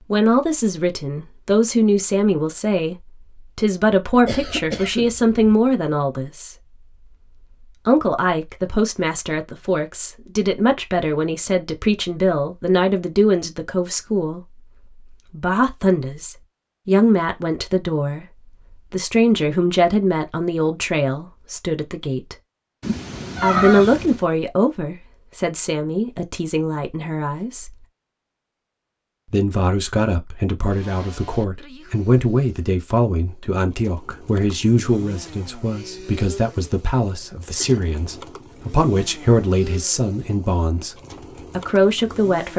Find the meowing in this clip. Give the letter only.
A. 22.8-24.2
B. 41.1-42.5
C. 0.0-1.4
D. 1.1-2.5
A.